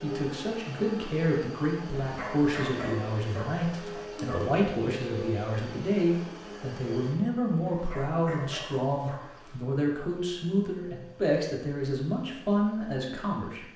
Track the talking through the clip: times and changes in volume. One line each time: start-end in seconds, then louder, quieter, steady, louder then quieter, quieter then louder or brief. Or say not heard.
0.0-13.7 steady.